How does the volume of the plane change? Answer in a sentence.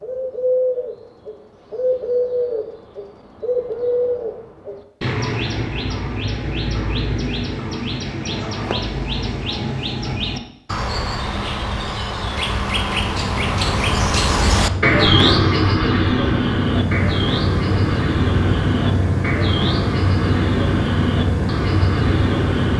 The loudness of the plane goes up.